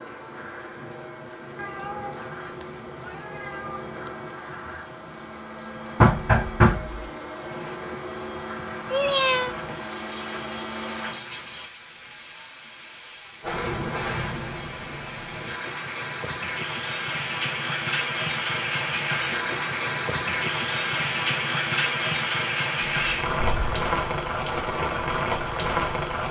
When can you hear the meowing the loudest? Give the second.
9 s.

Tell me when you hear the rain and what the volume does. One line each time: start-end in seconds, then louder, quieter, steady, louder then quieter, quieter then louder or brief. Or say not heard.
0.0-26.2 louder.